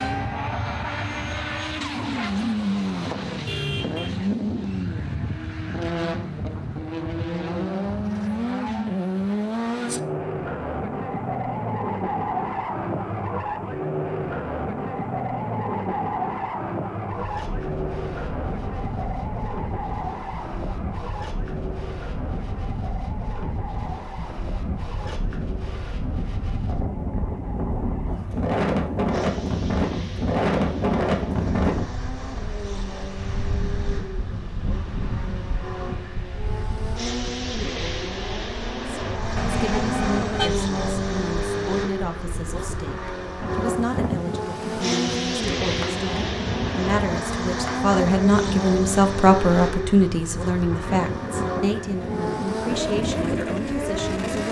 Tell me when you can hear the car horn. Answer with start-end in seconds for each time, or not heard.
3.5-4.1, 39.4-40.5.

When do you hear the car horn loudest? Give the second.
40 s.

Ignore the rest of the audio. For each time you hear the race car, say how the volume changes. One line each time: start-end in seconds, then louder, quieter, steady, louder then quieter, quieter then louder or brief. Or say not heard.
0.0-54.4 quieter then louder.